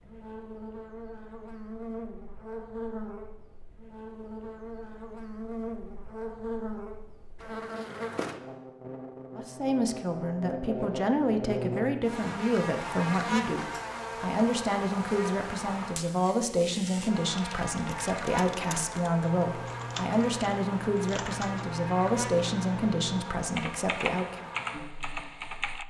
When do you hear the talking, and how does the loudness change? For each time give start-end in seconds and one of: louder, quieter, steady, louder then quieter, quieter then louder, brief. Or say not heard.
9.3-24.5 steady.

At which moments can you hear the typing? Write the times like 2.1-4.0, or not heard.
17.3-25.8.